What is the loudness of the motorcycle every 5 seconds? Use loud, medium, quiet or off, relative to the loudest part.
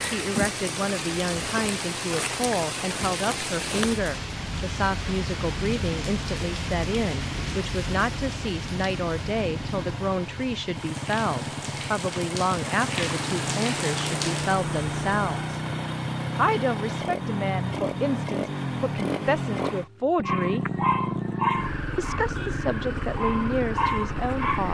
quiet, medium, loud, loud, loud.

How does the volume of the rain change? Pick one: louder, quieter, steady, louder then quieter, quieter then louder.
quieter then louder.